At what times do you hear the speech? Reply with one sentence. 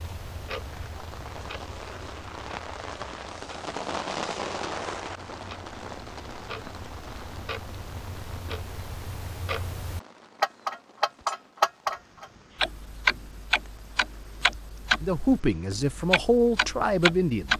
The speech can be heard from 15.0 to 17.5 s.